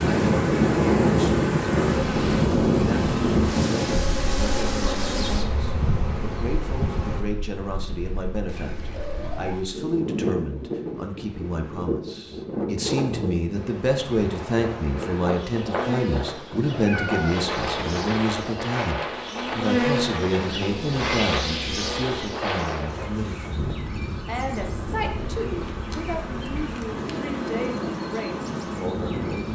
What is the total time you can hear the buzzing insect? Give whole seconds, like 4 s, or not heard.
23 s.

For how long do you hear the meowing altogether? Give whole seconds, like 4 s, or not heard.
2 s.